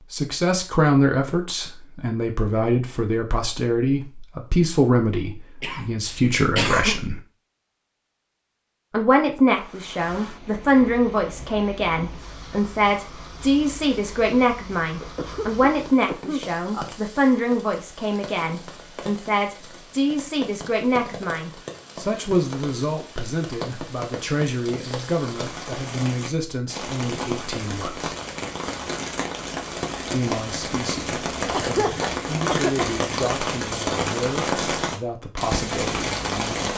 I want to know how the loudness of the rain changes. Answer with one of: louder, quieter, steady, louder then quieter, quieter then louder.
louder.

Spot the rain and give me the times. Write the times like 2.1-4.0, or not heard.
9.5-36.7.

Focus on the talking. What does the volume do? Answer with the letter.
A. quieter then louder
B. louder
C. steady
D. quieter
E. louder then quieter
D.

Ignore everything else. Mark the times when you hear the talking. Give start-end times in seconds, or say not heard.
0.1-7.2, 8.9-28.1, 30.1-36.5.